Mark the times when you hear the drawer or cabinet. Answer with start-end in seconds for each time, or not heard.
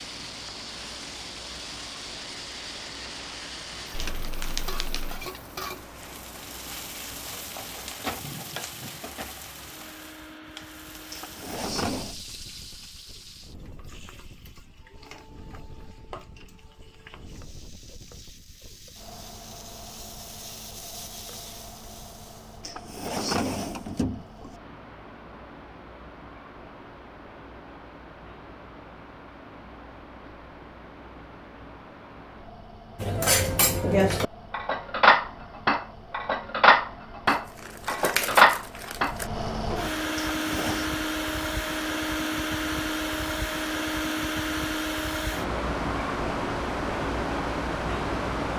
11.1-12.2, 22.6-24.6, 40.2-40.9.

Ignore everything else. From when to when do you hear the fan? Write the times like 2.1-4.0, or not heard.
0.0-48.5.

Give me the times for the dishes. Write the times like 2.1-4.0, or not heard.
33.0-40.0.